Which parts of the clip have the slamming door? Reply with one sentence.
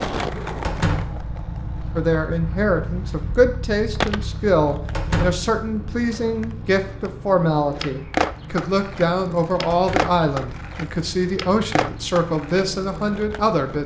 You can hear the slamming door from 0.6 to 1.2 s, from 4.9 to 5.5 s and from 9.7 to 10.1 s.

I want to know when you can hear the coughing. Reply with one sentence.
The coughing can't be heard in this clip.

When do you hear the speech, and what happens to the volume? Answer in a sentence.
The speech can be heard from 1.9 to 13.8 s, at a steady volume.